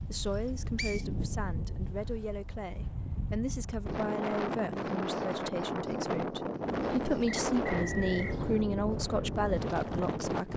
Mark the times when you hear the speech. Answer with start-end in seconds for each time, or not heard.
0.0-10.5.